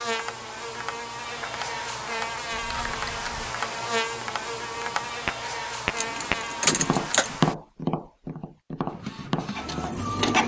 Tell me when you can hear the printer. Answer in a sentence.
You can hear the printer from 8.8 to 10.4 s.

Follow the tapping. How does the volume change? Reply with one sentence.
The loudness of the tapping goes up, then down.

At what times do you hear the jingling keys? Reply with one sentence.
You can hear the jingling keys from 2.5 to 3.5 s and from 6.0 to 7.3 s.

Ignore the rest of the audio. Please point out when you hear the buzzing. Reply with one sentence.
The buzzing can be heard from 0.0 to 7.5 s.